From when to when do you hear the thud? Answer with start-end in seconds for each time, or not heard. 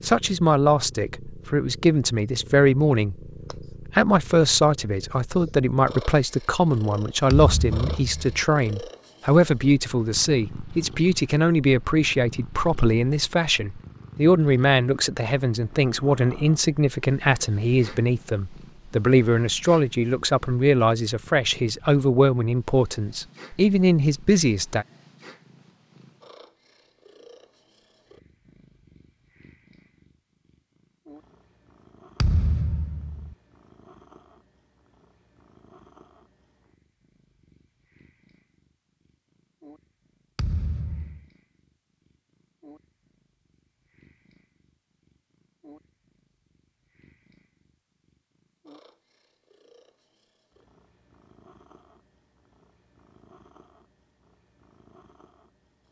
7.3-8.4, 32.2-33.4, 40.4-41.2.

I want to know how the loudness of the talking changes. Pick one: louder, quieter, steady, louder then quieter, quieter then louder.
steady.